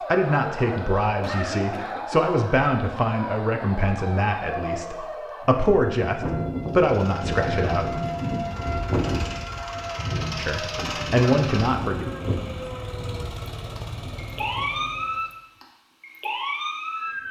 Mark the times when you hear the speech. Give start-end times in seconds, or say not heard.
0.1-7.9, 10.3-12.1.